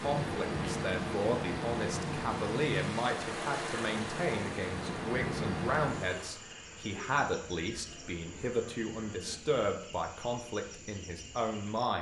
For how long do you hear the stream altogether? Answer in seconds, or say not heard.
6 s.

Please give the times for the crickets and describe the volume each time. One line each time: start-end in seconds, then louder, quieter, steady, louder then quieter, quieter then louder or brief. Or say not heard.
0.0-11.9 quieter.